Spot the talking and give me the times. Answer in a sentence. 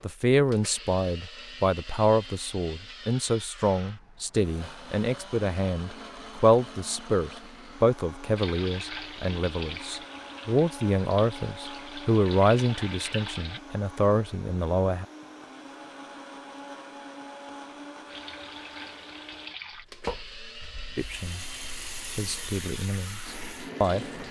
The talking can be heard from 0.0 to 15.1 s, from 20.9 to 21.4 s and from 22.1 to 24.1 s.